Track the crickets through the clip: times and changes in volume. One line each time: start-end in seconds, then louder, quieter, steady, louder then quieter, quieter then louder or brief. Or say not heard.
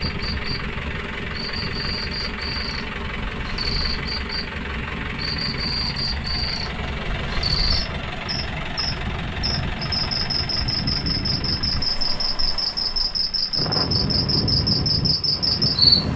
0.0-16.1 louder.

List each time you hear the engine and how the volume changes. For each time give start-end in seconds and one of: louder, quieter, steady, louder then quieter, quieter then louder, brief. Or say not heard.
0.0-16.1 quieter.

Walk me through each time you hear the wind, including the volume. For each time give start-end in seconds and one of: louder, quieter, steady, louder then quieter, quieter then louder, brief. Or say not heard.
0.0-16.1 louder.